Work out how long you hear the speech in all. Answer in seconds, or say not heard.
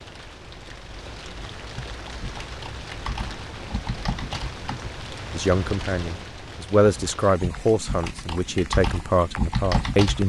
5 s.